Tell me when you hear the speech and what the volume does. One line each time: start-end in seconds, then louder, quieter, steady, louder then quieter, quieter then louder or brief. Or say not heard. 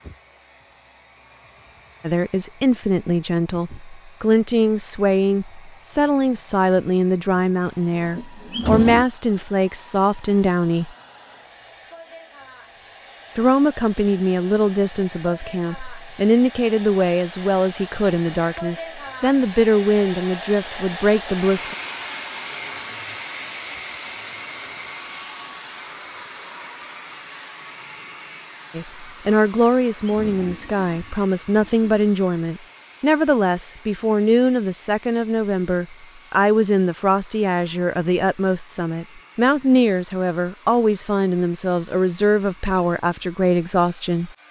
2.0-10.9 steady
13.3-21.8 steady
28.8-44.4 steady.